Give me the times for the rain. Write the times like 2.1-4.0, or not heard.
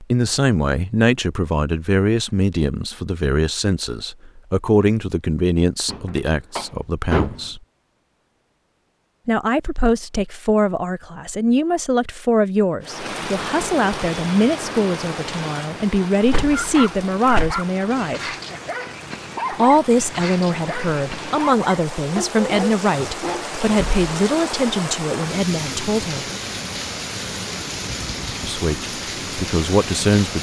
12.8-30.3.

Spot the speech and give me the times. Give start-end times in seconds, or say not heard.
0.0-7.6, 9.2-18.3, 19.5-26.2, 28.4-30.3.